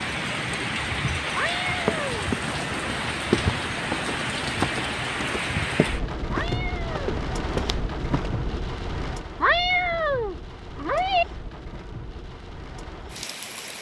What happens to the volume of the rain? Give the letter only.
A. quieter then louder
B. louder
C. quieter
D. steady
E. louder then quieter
C.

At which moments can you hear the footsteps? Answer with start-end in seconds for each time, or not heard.
1.9-8.6.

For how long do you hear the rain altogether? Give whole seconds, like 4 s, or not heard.
14 s.